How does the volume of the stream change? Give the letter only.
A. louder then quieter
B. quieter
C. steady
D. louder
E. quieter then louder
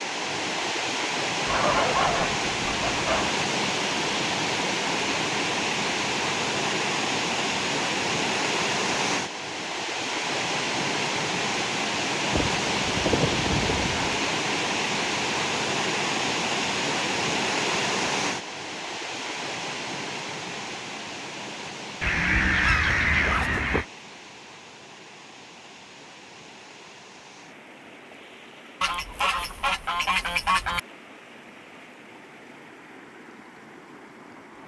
B.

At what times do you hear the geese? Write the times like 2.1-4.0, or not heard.
1.4-3.4, 12.3-14.2, 22.0-23.9, 28.8-30.8.